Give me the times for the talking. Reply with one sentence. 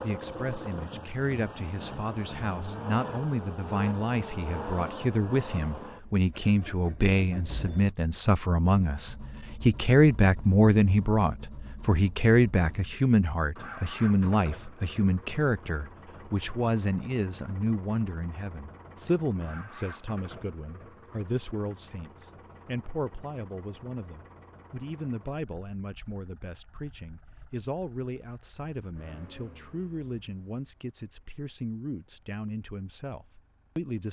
You can hear the talking from 0.0 to 34.0 s.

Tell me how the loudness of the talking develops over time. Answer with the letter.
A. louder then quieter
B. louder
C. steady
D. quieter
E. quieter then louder
A.